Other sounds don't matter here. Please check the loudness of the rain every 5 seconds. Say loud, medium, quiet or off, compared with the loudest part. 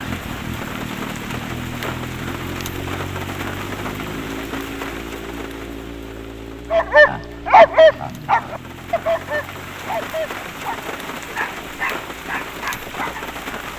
loud, medium, loud.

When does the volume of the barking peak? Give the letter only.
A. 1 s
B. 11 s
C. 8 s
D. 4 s
C.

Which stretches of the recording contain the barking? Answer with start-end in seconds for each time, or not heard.
6.7-13.2.